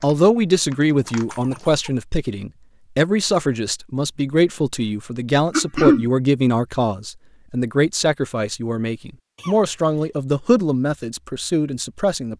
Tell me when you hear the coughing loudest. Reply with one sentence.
The volume of the coughing peaks at 6 seconds.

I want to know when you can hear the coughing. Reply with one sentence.
The coughing can be heard from 1.3 to 1.9 s, from 5.5 to 6.0 s and from 9.3 to 10.2 s.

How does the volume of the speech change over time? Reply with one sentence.
The volume of the speech stays about the same.